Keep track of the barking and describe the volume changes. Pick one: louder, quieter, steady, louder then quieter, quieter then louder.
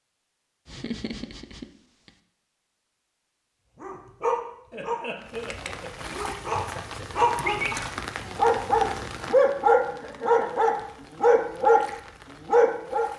louder.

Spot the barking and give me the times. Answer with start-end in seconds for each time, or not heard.
3.8-13.1.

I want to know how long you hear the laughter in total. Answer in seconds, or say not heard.
4 s.